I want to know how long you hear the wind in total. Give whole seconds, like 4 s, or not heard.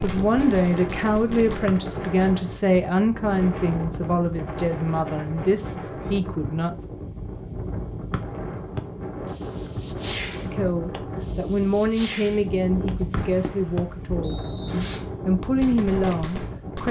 17 s.